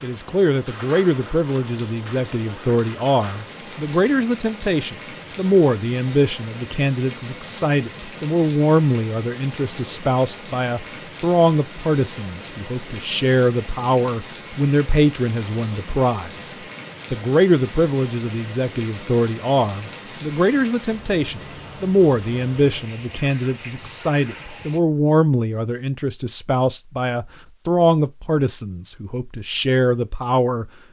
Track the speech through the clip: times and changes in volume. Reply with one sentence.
The speech can be heard from 0.0 to 30.7 s, at a steady volume.